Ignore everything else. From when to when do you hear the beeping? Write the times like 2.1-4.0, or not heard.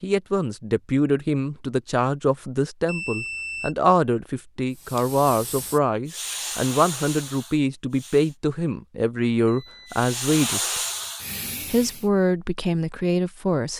2.9-3.8, 9.4-9.9.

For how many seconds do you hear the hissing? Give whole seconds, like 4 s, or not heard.
6 s.